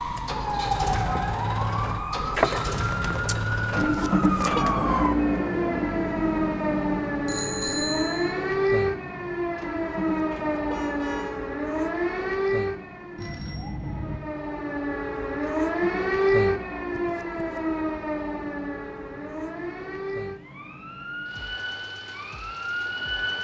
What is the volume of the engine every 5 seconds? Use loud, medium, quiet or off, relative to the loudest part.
loud, loud, quiet, quiet, quiet.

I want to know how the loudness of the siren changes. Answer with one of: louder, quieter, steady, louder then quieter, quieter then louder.
quieter.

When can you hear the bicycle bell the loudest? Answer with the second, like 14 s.
8 s.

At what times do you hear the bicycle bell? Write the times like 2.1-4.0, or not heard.
7.2-8.3, 13.2-14.2.